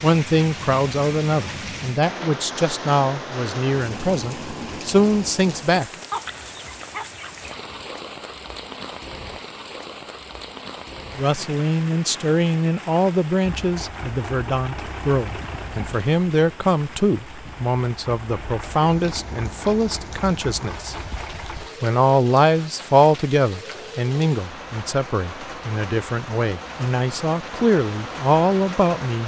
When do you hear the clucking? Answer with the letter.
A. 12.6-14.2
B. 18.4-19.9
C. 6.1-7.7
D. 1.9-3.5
C.